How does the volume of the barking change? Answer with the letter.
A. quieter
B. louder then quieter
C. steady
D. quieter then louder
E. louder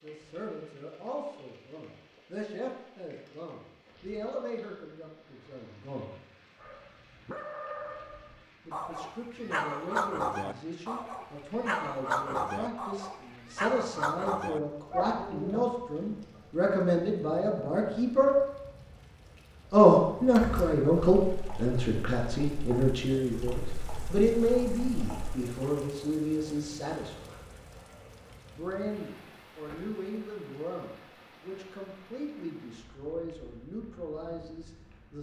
E.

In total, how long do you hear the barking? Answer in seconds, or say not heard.
9 s.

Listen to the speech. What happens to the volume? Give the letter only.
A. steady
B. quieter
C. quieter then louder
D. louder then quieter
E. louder
D.